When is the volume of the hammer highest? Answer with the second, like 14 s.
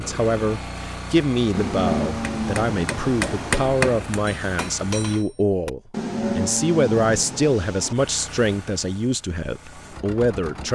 4 s.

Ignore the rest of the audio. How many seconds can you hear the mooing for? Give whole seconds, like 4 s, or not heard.
4 s.